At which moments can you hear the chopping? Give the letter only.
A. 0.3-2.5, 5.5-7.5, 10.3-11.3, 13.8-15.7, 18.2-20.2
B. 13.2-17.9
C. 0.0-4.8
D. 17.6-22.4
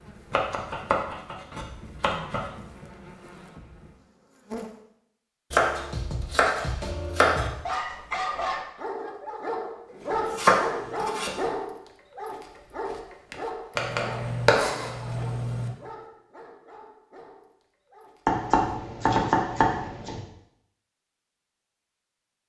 A.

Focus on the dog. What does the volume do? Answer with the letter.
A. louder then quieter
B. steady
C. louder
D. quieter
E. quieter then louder
D.